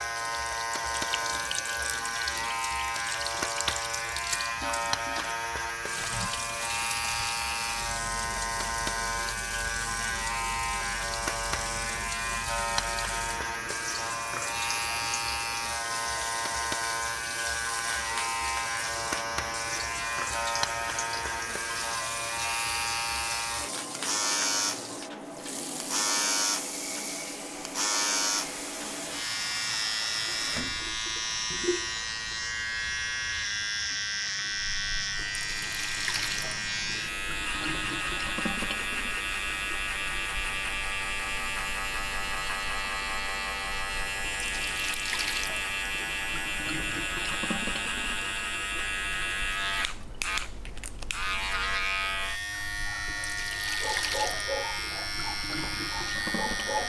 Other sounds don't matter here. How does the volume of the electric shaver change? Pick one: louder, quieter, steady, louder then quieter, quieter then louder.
steady.